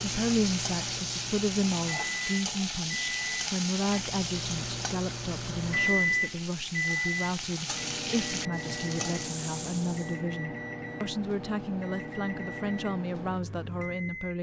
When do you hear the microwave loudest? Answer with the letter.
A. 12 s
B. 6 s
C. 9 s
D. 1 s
B.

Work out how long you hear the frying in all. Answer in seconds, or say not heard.
10 s.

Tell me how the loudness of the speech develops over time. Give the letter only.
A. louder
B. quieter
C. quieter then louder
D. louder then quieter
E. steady
E.